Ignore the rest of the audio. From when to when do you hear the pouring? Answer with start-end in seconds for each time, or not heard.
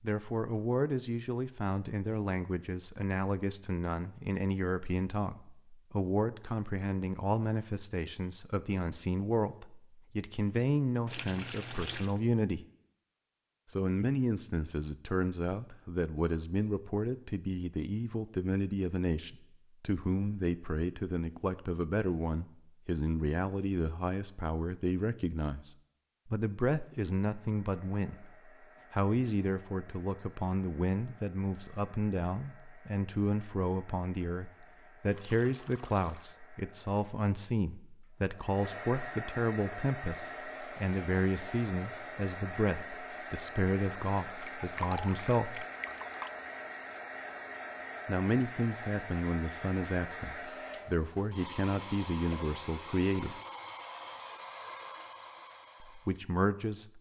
11.1-12.2, 35.1-36.4, 44.3-46.3.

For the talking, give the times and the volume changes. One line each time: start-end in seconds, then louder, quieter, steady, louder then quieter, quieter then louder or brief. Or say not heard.
0.0-12.7 steady
13.7-45.6 steady
48.0-53.4 steady
55.9-56.9 brief.